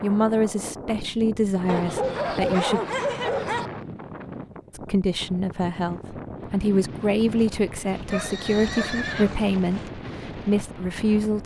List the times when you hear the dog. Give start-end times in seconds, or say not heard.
1.6-3.7, 7.4-8.8.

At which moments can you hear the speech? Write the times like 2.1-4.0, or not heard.
0.0-2.8, 4.8-11.4.